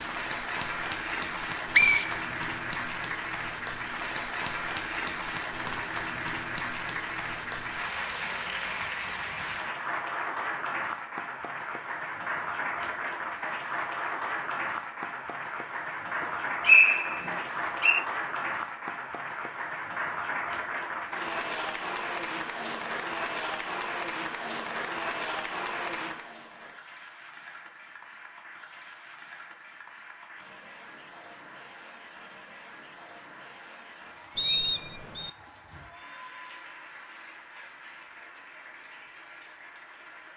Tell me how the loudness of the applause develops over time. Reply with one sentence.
The loudness of the applause goes down.